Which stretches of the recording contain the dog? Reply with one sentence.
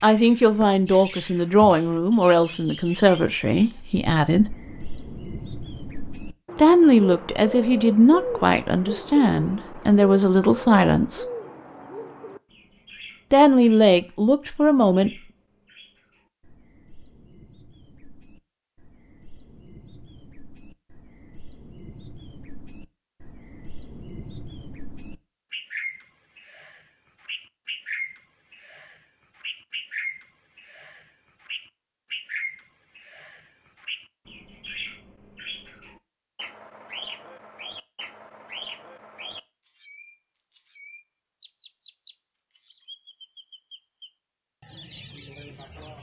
The dog can't be heard in this clip.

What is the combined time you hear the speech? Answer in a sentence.
The speech can be heard for 11 seconds in total.